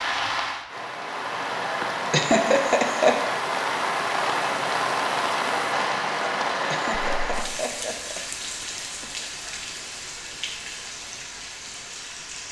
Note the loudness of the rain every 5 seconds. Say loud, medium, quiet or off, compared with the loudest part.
loud, loud, medium.